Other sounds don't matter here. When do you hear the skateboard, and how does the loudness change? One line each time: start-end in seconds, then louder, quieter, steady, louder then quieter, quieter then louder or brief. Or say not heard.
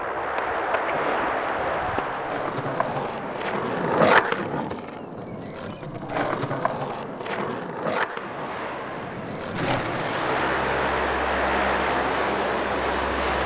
0.0-10.4 louder then quieter.